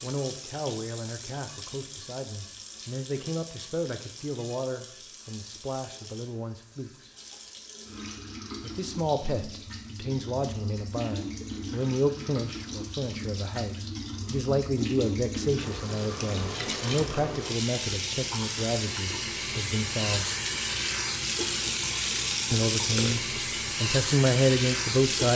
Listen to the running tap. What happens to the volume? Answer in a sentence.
The loudness of the running tap goes up.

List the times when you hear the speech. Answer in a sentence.
The speech can be heard from 0.0 to 7.1 s, from 8.6 to 20.2 s and from 22.5 to 25.3 s.